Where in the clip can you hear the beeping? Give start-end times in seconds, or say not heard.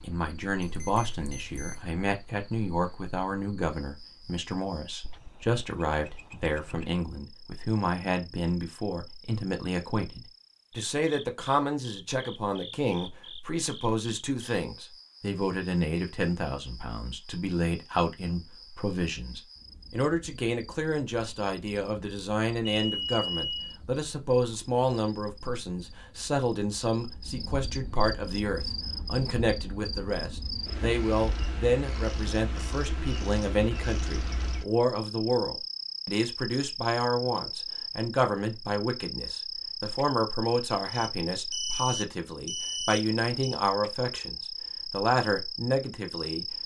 0.6-1.9, 22.8-23.8, 40.9-43.5.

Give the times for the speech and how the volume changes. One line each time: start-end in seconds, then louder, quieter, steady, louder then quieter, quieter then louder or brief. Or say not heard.
0.0-46.6 steady.